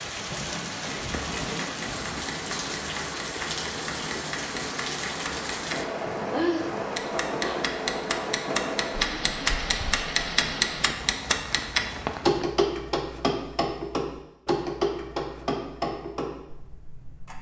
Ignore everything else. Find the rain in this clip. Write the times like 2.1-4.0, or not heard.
0.0-12.4.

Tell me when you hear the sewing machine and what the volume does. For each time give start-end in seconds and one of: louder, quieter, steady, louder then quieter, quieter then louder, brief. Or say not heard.
not heard.